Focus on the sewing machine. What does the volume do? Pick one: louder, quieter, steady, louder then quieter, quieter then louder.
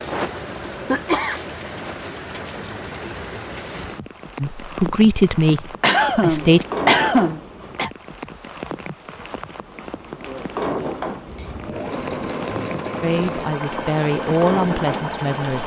steady.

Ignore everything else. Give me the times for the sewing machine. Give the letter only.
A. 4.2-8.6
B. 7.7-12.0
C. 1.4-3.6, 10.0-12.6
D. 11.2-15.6
D.